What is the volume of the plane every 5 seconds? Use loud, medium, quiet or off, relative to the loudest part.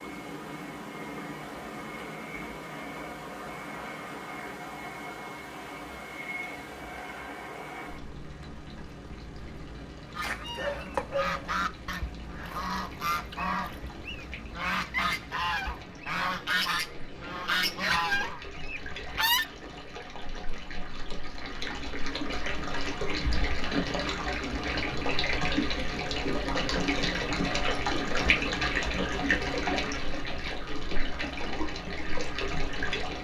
loud, loud, medium, medium, off, off, off.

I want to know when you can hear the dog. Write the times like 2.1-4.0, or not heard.
10.2-11.4.